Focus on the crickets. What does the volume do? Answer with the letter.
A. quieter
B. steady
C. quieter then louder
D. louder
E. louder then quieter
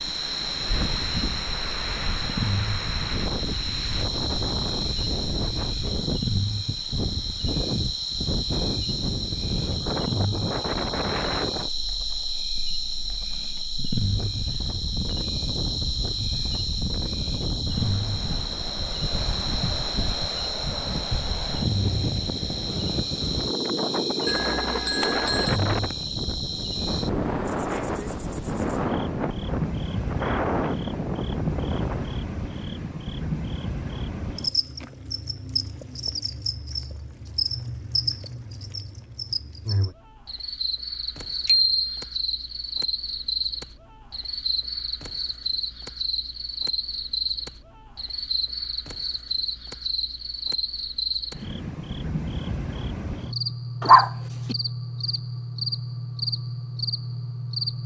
B.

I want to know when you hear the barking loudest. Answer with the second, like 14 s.
54 s.